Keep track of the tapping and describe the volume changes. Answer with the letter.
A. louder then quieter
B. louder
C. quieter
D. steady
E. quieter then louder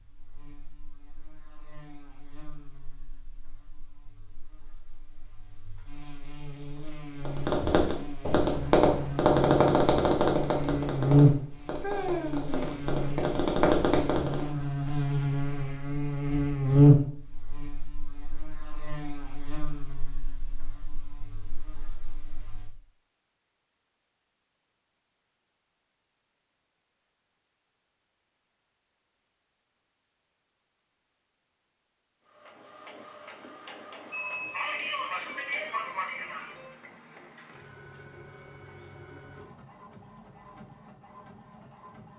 E.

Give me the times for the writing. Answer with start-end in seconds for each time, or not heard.
not heard.